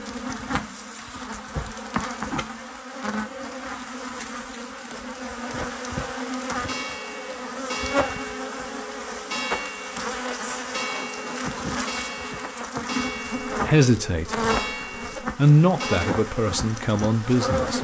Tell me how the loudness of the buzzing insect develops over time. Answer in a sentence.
The loudness of the buzzing insect stays about the same.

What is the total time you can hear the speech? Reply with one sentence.
You can hear the speech for 3 seconds altogether.